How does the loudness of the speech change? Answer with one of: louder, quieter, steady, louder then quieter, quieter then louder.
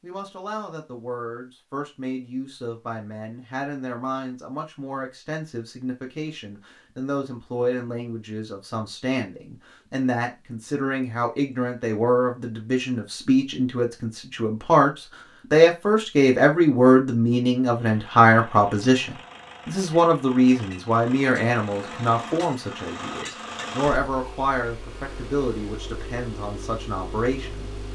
louder then quieter.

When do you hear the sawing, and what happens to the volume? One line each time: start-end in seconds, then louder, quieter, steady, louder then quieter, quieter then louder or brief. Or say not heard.
not heard.